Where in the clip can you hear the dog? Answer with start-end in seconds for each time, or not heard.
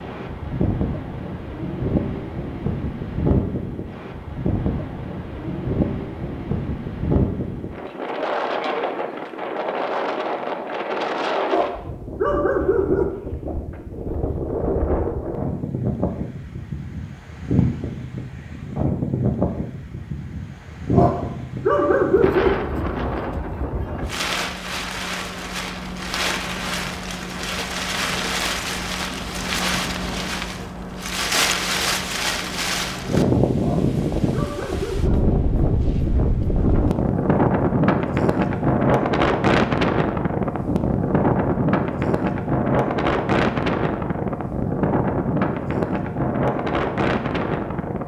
11.4-13.1, 20.9-22.5, 33.6-35.2.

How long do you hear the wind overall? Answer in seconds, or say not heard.
48 s.